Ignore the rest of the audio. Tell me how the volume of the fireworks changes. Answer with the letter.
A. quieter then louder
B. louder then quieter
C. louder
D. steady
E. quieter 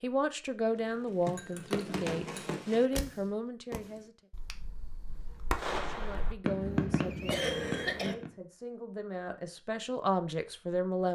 A.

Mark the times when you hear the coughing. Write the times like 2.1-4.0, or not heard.
7.2-8.2.